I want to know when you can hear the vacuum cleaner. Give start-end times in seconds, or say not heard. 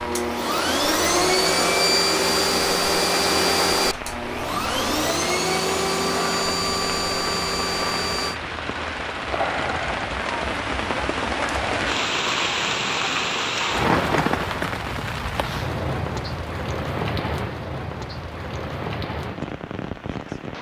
0.0-8.4.